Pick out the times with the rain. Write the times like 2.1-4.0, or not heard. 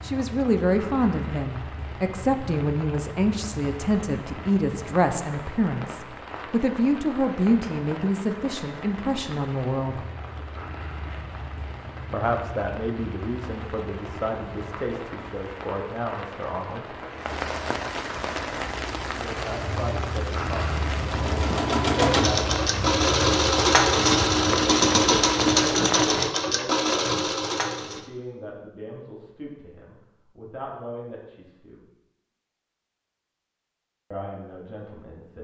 0.0-26.4.